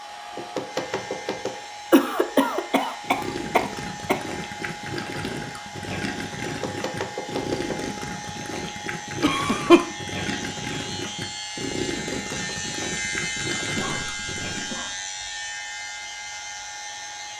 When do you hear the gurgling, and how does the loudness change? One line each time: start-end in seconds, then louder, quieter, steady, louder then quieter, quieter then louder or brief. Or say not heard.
3.0-14.8 steady.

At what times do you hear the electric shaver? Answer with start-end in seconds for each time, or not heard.
0.0-17.3.